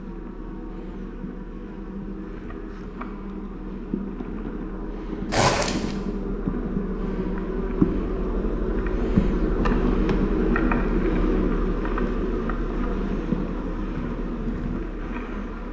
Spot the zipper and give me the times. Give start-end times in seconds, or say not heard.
5.3-6.0.